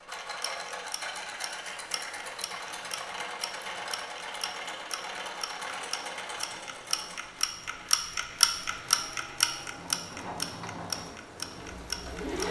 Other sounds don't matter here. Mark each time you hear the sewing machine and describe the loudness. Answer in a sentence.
You can hear the sewing machine from 0.0 to 12.4 s, getting quieter then louder.